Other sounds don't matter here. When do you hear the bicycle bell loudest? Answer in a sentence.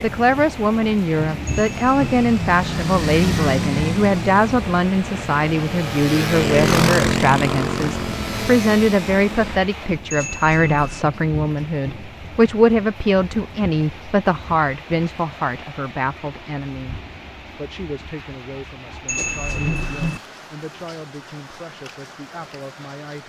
The volume of the bicycle bell peaks at 20 seconds.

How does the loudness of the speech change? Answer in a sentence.
The loudness of the speech goes down.